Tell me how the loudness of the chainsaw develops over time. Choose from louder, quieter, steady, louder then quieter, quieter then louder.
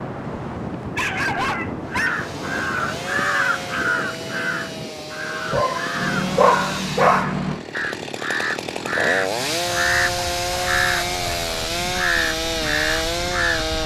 louder.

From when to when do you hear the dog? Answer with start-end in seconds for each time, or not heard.
0.9-2.2, 5.5-7.6, 9.7-11.6.